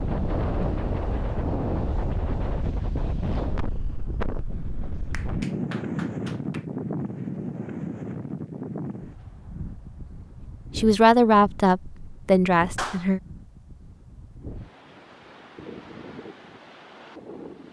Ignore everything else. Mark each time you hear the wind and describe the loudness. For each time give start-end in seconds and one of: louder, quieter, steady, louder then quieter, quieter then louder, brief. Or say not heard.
0.0-17.6 quieter.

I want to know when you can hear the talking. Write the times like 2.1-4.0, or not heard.
10.8-13.2.